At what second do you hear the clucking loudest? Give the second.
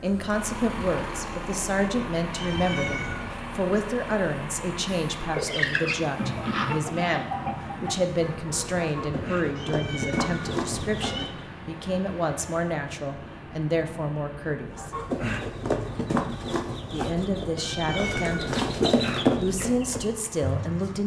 19 s.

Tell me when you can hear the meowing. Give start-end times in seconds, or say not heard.
2.3-3.2, 9.6-11.2, 17.6-18.6.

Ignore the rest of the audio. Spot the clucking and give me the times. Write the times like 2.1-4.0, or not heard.
5.2-11.5, 14.7-21.0.